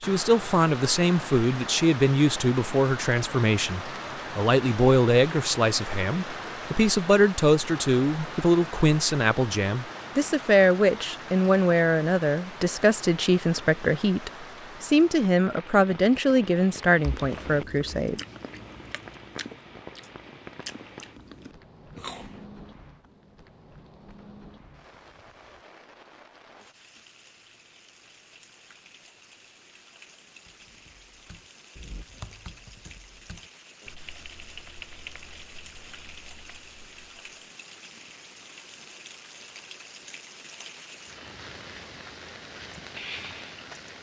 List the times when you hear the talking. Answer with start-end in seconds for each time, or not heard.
0.0-18.2.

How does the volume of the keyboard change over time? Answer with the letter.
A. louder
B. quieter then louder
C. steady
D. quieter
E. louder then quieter
E.